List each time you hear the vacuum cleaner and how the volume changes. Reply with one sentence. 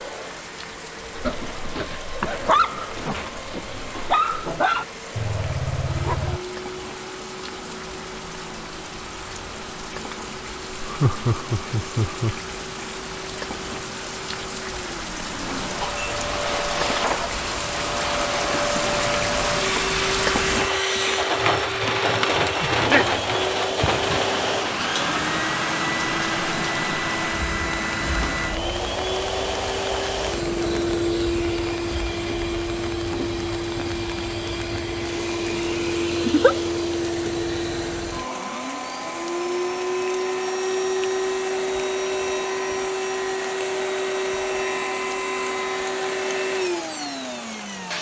You can hear the vacuum cleaner from 0.0 to 47.9 s, getting louder.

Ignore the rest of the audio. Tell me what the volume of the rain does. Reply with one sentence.
The loudness of the rain goes up, then down.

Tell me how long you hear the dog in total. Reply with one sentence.
You can hear the dog for 5 seconds altogether.